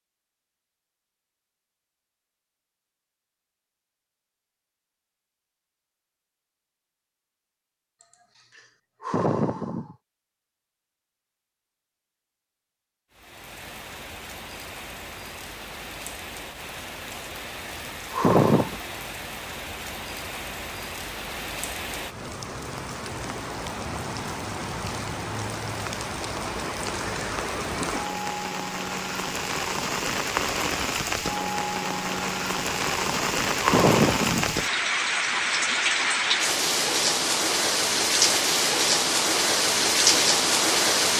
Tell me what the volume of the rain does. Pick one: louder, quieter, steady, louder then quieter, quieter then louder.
louder.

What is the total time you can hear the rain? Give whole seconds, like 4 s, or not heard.
28 s.